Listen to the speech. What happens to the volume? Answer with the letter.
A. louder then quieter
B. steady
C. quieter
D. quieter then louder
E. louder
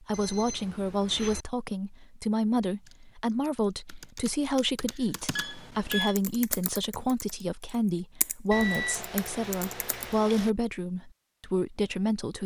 B.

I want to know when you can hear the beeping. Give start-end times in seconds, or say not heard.
0.1-1.4, 5.3-6.2, 8.5-10.5.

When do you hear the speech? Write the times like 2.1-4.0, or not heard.
0.0-12.4.